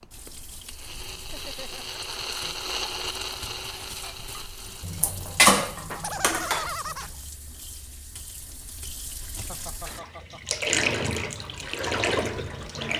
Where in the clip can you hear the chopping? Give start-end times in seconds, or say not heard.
not heard.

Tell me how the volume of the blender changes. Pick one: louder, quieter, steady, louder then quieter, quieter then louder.
louder then quieter.